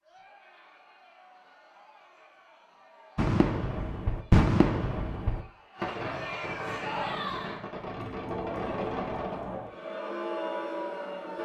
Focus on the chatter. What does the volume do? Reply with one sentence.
The volume of the chatter goes up.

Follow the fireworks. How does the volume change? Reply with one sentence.
The volume of the fireworks goes down.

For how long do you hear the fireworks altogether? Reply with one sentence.
You can hear the fireworks for 6 seconds altogether.